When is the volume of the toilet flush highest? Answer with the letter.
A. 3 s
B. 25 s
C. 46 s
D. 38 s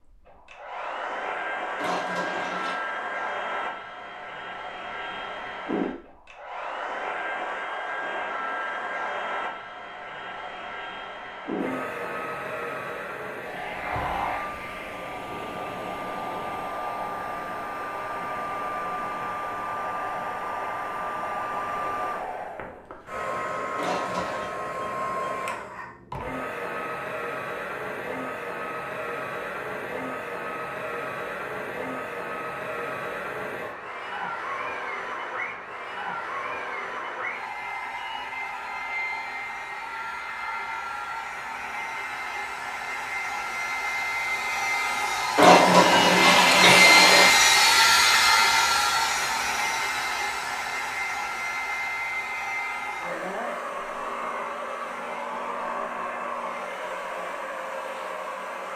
C.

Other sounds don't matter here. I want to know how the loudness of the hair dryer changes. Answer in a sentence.
The loudness of the hair dryer goes up.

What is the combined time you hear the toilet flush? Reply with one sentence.
You can hear the toilet flush for 4 seconds altogether.